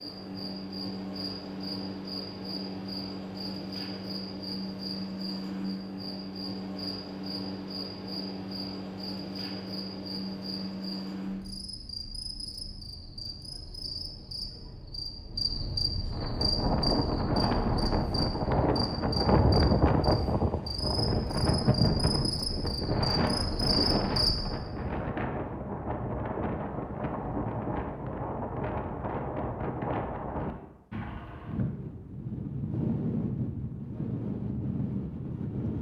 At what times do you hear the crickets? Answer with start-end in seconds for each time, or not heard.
0.0-24.4.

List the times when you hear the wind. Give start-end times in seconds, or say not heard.
16.1-35.7.